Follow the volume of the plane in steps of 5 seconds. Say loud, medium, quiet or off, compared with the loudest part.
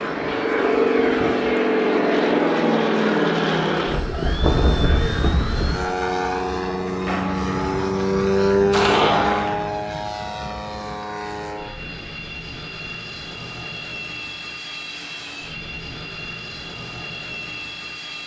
loud, loud, quiet, quiet.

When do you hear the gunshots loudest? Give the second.
9 s.